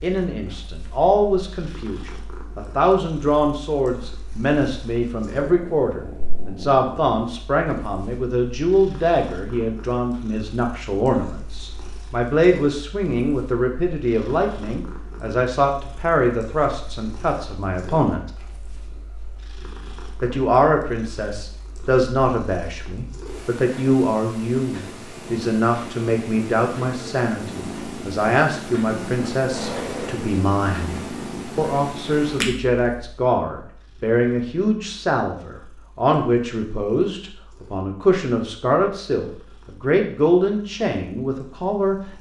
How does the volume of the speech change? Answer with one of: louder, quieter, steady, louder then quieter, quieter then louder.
steady.